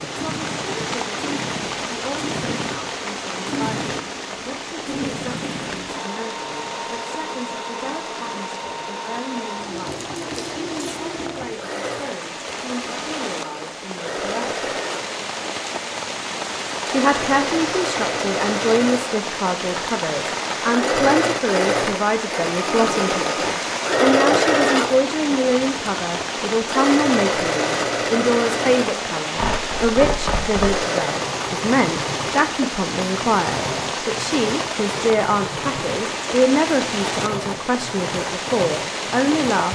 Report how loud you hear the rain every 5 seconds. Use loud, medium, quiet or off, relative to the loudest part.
loud, medium, medium, loud, loud, loud, loud, loud.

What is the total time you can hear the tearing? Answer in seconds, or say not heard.
3 s.